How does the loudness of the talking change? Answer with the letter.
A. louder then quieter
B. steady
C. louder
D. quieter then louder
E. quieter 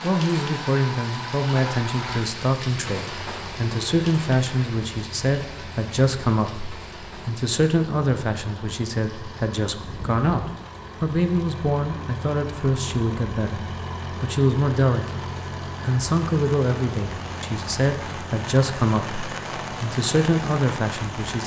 B.